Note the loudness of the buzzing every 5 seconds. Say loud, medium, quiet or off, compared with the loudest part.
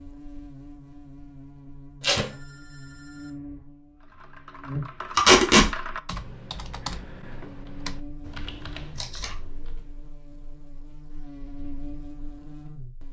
loud, medium, loud.